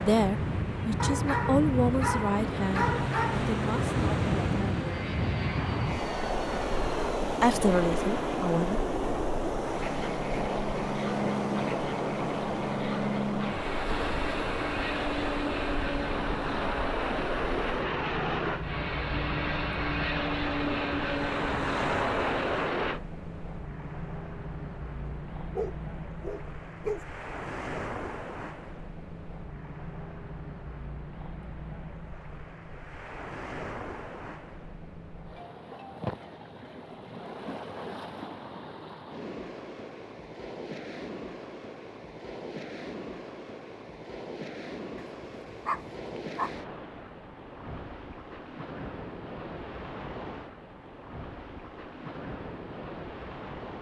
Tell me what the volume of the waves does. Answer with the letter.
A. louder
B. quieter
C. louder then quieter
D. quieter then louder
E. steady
B.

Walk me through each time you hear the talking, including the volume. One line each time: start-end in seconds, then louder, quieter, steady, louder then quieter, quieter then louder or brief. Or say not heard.
0.0-5.0 louder then quieter
7.4-8.8 brief.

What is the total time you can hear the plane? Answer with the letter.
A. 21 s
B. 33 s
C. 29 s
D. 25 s
A.